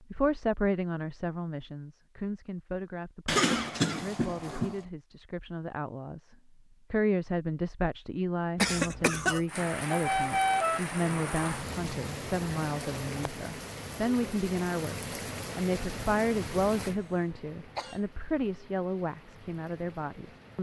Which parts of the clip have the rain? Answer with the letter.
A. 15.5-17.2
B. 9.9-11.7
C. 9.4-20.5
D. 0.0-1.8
C.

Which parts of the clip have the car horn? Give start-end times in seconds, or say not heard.
9.9-11.7.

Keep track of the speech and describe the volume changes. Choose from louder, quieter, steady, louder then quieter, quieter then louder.
steady.